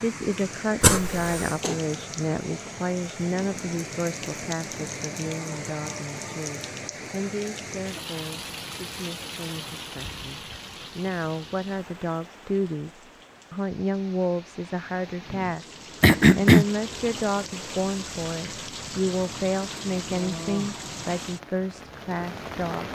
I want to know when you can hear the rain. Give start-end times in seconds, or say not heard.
0.0-22.9.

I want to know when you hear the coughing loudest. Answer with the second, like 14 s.
16 s.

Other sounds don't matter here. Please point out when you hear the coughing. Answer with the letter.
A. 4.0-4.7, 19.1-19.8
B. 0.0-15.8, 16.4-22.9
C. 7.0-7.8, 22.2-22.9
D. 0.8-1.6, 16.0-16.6
D.